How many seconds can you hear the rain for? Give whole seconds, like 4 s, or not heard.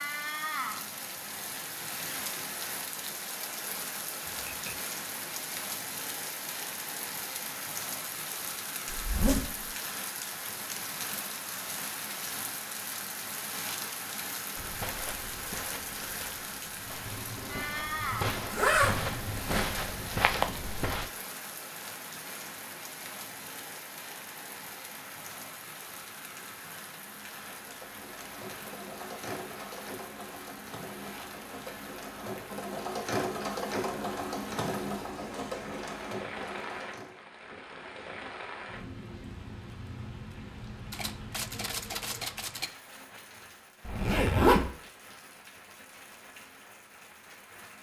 48 s.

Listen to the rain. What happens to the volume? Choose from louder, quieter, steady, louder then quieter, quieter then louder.
quieter.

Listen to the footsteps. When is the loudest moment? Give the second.
20 s.